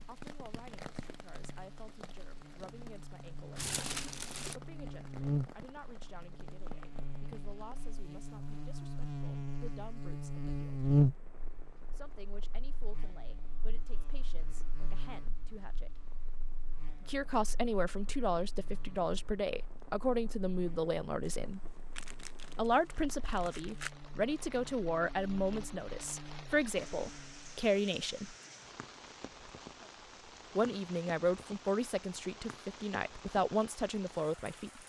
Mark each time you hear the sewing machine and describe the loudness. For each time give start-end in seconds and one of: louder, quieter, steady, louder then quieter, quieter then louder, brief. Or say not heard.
not heard.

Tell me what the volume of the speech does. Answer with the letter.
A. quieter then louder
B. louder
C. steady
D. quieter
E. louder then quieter
B.